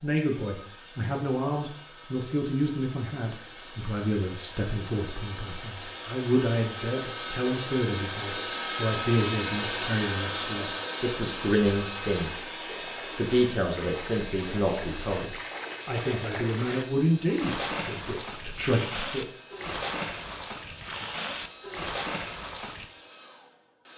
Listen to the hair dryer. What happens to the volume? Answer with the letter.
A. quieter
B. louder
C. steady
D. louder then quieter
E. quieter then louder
D.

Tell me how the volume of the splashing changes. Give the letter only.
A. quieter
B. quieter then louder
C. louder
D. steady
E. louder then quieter
C.